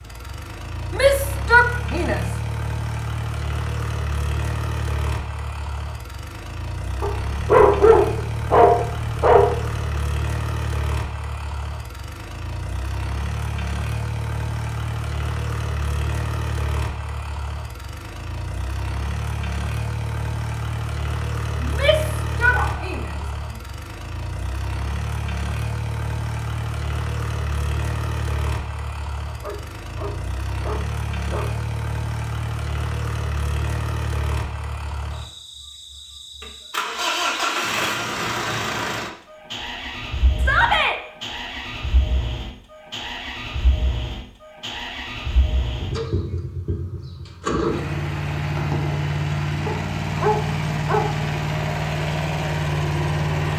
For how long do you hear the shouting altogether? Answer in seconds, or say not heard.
3 s.